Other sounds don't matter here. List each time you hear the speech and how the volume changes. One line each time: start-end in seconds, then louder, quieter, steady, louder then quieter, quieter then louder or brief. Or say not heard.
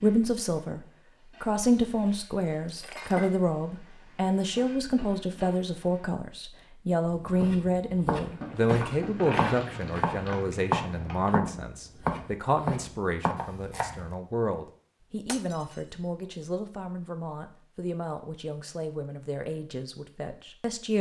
0.0-20.9 quieter.